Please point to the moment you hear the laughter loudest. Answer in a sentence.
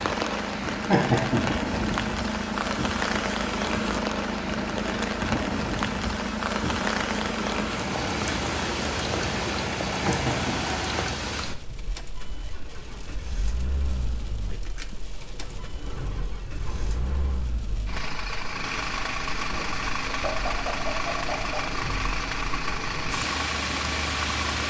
The loudest moment of the laughter is at 1 second.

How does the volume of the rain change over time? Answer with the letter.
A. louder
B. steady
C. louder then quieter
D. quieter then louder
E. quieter
D.